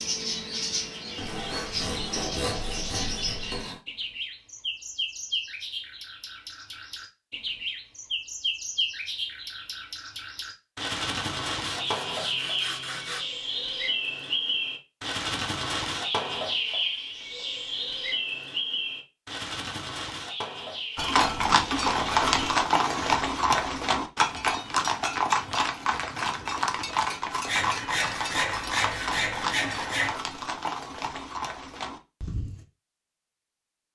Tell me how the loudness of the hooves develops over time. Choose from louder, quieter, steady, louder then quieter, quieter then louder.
quieter.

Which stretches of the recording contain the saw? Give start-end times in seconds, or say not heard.
1.1-3.8, 11.6-13.2, 22.1-23.2, 27.4-30.1.